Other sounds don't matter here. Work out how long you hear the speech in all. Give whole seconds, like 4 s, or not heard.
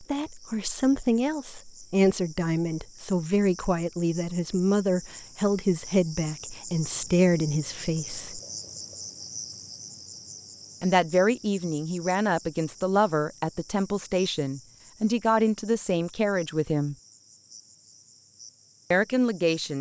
15 s.